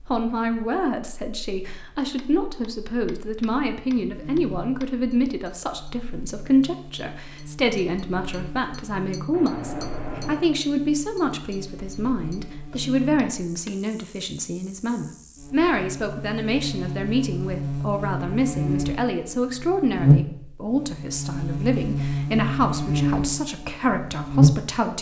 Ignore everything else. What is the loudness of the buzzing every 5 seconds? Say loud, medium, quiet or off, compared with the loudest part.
quiet, quiet, quiet, medium, loud.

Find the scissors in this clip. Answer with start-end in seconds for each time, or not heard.
9.3-10.4.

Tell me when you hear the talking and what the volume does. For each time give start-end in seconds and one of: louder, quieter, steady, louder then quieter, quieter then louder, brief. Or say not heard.
0.1-24.9 steady.